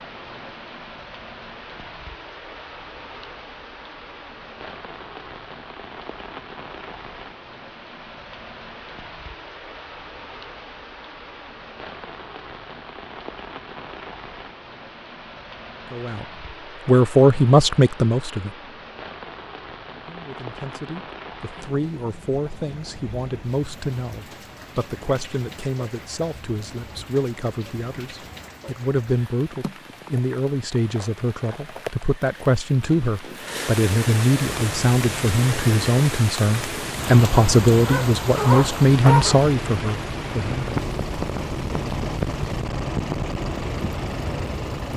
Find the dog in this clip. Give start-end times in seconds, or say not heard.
37.9-39.4.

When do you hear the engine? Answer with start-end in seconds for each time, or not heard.
34.4-44.9.